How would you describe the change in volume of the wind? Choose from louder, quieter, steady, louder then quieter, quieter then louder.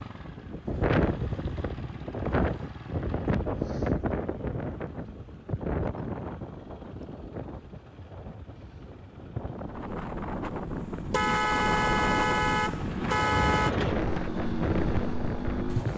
quieter then louder.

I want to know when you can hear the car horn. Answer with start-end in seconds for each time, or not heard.
11.1-13.8.